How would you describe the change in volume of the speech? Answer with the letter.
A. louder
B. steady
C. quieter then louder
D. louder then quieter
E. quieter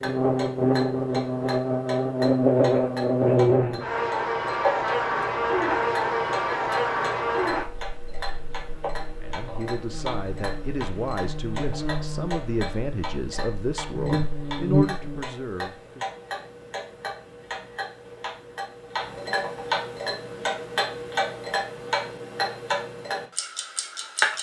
B.